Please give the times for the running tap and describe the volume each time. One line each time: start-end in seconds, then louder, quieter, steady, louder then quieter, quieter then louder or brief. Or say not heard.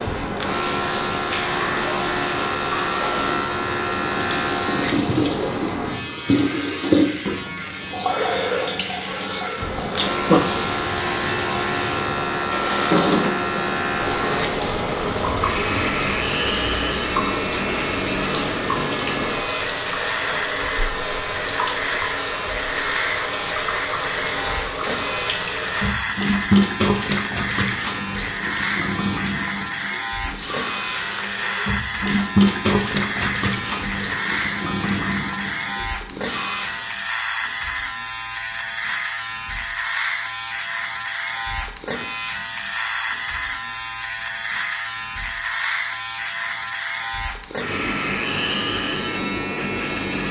0.0-37.0 steady.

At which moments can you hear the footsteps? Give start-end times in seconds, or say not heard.
not heard.